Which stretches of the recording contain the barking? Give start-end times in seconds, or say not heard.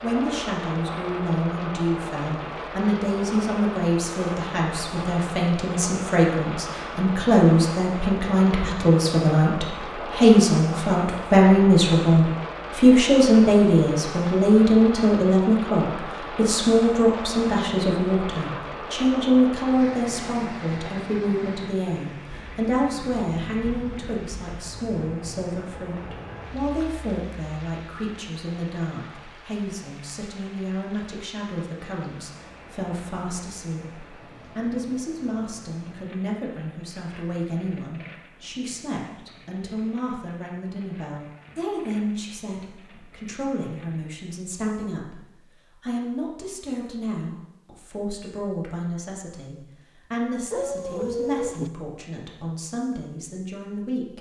50.5-51.7.